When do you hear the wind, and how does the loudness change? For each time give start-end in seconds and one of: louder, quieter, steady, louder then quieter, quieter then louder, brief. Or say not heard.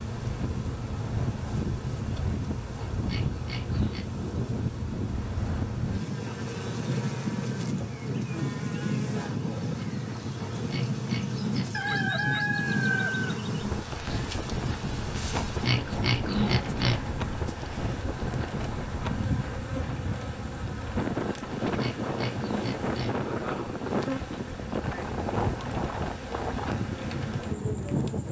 0.0-28.2 steady.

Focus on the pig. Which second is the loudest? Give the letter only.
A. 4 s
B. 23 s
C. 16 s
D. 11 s
C.